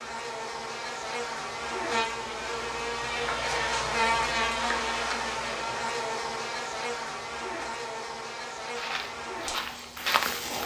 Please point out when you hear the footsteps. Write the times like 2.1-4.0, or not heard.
8.7-10.6.